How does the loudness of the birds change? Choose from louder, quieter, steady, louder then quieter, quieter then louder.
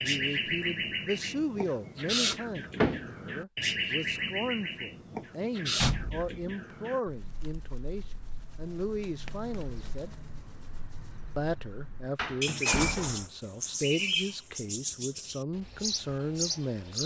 quieter then louder.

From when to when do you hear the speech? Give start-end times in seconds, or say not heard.
0.0-10.2, 11.3-17.0.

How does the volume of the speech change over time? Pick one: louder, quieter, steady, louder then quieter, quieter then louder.
steady.